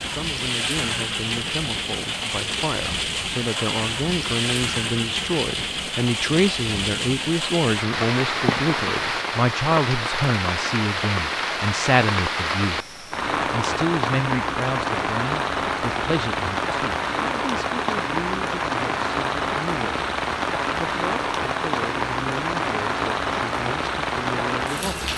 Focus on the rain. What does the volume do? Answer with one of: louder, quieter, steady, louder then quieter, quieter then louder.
steady.